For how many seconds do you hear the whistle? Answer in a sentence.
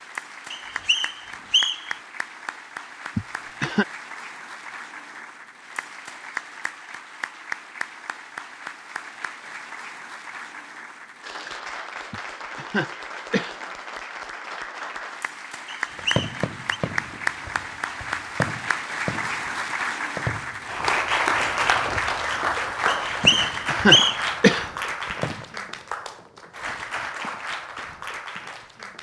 You can hear the whistle for 4 seconds altogether.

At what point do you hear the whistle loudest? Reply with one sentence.
The volume of the whistle peaks at 24 seconds.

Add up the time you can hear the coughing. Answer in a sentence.
You can hear the coughing for 4 seconds altogether.